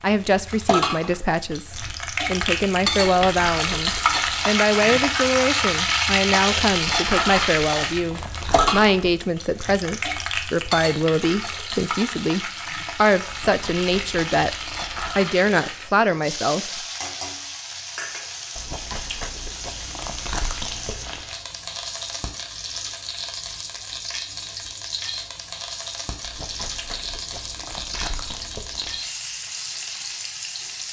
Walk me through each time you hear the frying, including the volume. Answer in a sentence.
The frying can be heard from 0.0 to 30.8 s, getting quieter.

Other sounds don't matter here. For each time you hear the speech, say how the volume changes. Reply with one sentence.
You can hear the speech from 0.0 to 14.6 s, at a steady volume; and briefly from 15.2 to 16.9 s.